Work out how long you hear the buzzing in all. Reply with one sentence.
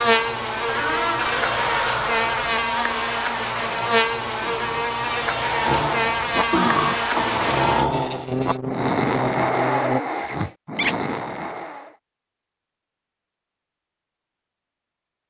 The buzzing can be heard for 10 seconds in total.